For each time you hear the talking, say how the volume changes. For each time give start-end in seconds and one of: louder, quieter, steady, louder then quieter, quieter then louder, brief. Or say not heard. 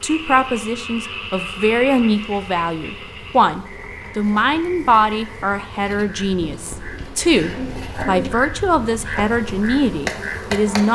0.0-10.9 steady.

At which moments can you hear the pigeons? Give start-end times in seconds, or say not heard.
6.4-8.3.